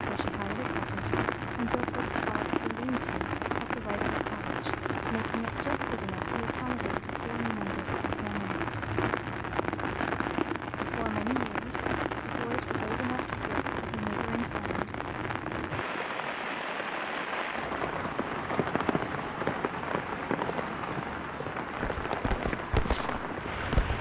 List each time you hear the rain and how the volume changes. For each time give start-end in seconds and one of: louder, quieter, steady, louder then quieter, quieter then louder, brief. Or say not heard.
0.0-23.9 steady.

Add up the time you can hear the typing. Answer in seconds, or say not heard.
not heard.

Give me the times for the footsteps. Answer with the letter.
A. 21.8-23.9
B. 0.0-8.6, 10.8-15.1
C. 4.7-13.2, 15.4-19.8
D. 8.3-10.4
A.